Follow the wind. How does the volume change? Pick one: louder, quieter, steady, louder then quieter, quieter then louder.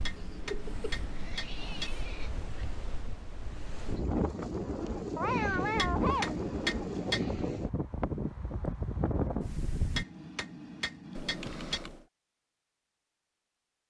louder.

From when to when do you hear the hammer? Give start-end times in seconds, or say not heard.
0.0-1.9, 5.8-7.3, 9.9-11.8.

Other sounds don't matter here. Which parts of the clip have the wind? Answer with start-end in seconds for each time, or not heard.
0.0-10.1.